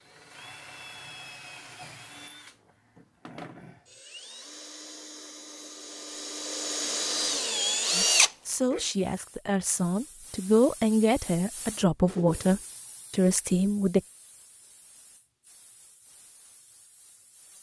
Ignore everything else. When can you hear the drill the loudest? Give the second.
8 s.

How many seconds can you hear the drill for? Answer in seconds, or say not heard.
9 s.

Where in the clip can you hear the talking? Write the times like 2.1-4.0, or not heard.
7.9-14.0.